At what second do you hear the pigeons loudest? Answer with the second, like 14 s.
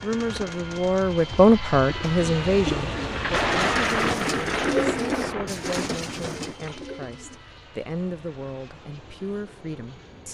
5 s.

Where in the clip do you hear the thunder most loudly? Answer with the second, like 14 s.
4 s.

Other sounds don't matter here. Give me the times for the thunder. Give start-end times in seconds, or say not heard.
3.1-6.8.